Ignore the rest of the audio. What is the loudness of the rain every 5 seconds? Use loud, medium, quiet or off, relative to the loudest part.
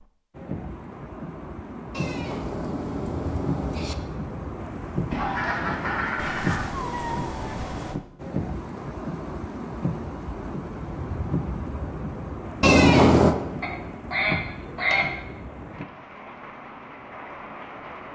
loud, loud, loud, medium.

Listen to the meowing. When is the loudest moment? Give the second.
13 s.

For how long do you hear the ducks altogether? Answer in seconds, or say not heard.
3 s.